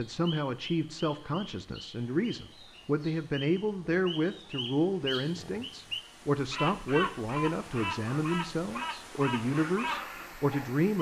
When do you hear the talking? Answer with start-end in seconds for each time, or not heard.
0.0-10.9.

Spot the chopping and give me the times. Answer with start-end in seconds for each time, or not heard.
not heard.